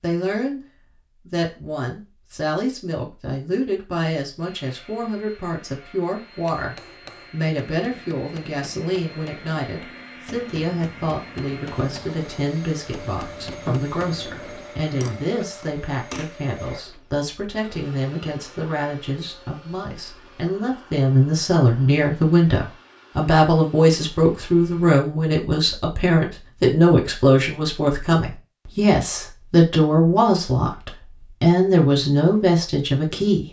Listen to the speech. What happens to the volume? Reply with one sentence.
The volume of the speech goes up.